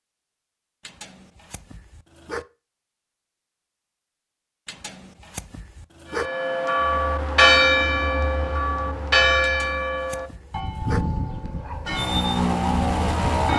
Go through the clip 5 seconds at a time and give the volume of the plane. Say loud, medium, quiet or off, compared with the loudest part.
off, quiet, loud.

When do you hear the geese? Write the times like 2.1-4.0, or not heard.
not heard.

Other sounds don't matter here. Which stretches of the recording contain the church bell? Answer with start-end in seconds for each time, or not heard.
6.2-13.5.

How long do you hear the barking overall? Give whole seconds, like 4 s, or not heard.
5 s.